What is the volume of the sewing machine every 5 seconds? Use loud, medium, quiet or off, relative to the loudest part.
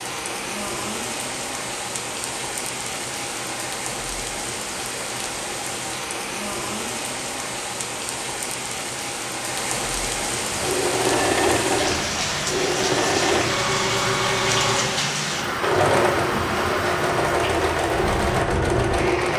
off, off, loud, loud.